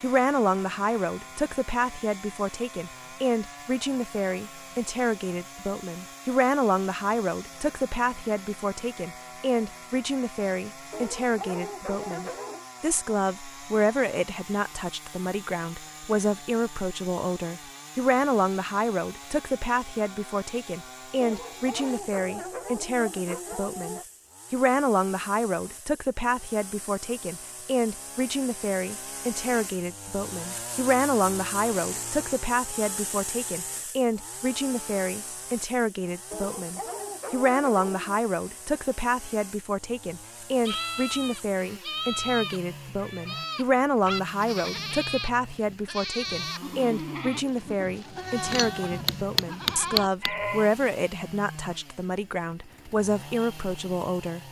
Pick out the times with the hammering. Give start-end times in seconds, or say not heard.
48.4-50.3.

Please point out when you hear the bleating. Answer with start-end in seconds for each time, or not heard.
40.6-50.7.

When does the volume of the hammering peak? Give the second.
50 s.